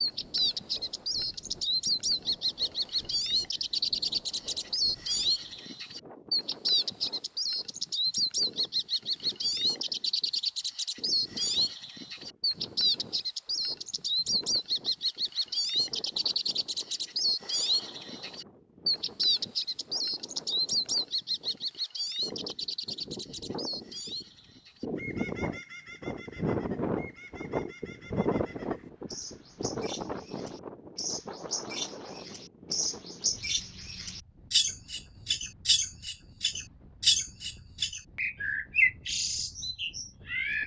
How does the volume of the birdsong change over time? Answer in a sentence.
The loudness of the birdsong goes down, then up.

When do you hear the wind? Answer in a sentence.
The wind can be heard from 0.0 to 40.6 s.